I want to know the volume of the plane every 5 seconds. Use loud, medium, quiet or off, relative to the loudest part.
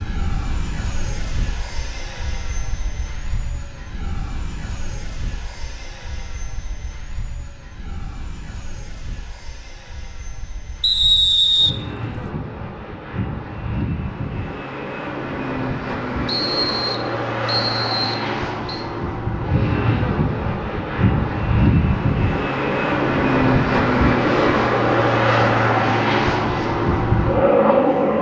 quiet, quiet, quiet, medium, loud, loud.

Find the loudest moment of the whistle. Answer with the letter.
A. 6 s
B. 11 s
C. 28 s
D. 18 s
B.